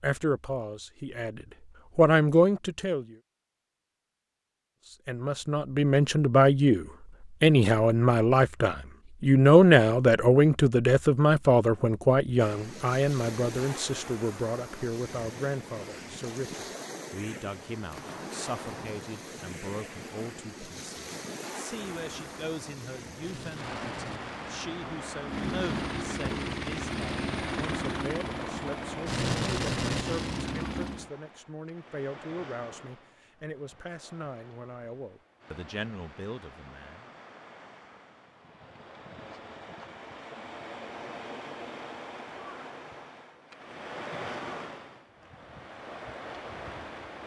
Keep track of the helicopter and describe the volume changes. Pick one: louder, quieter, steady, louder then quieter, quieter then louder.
louder.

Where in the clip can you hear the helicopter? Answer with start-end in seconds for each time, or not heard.
21.9-31.1.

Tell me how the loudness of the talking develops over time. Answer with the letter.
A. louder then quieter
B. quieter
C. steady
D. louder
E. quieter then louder
B.